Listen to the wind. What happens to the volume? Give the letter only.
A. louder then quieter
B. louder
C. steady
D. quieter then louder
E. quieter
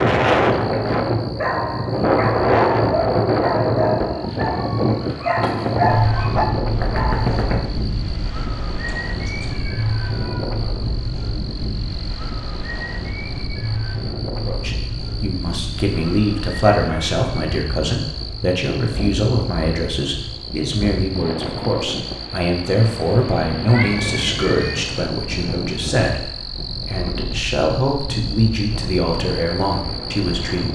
E.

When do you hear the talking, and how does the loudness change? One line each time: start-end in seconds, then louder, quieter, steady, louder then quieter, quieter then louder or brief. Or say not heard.
14.4-30.7 steady.